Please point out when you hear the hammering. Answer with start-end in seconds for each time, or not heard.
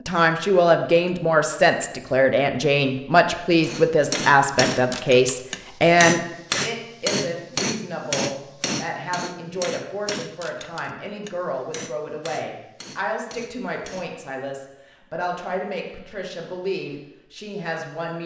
3.6-14.2.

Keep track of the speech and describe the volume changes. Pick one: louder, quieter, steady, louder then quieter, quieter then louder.
quieter.